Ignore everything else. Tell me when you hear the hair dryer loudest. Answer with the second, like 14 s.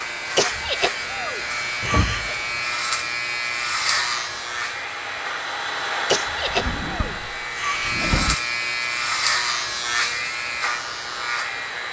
6 s.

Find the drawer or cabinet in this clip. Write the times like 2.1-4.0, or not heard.
1.8-2.5, 6.5-8.3.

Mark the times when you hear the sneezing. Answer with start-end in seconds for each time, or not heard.
0.3-2.4, 6.0-8.1.